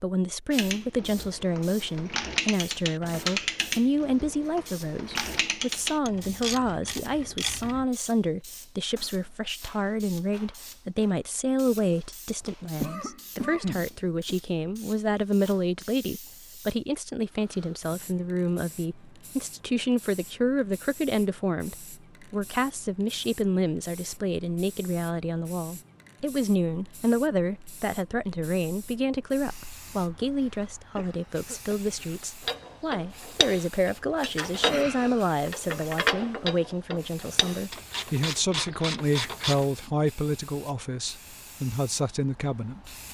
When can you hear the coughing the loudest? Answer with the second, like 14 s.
14 s.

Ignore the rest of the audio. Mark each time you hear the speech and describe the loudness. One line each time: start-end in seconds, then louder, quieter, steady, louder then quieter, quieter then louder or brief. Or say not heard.
0.0-43.0 steady.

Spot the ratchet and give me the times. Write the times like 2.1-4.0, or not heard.
0.5-7.8, 32.5-39.7.